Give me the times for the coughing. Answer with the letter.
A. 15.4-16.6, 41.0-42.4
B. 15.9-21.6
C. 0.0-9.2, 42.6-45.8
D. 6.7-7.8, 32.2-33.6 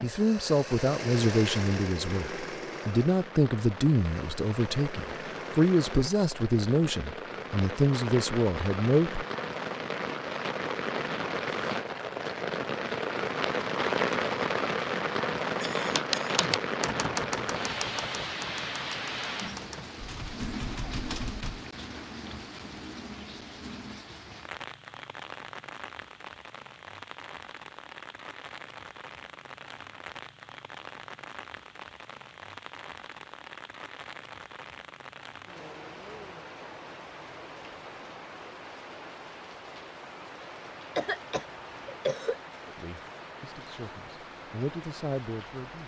A.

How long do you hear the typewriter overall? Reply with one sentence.
The typewriter can be heard for 6 seconds in total.